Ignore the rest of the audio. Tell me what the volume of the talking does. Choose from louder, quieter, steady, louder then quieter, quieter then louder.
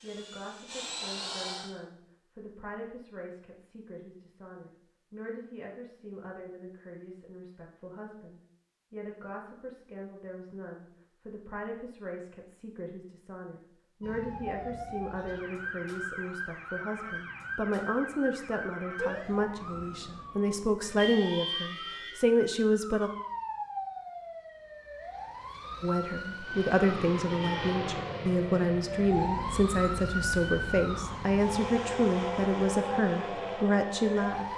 louder.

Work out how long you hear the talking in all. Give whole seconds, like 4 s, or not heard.
32 s.